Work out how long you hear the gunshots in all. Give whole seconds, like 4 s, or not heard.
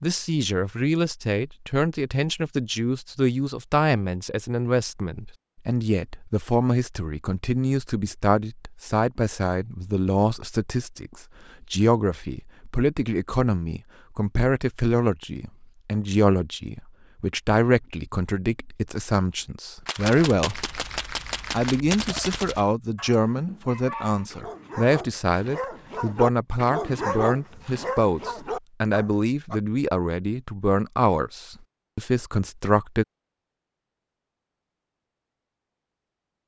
3 s.